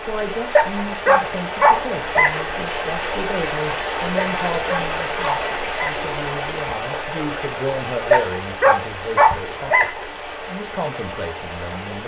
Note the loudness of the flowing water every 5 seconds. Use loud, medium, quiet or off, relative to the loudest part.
loud, loud, medium.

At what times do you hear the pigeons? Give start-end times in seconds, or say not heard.
not heard.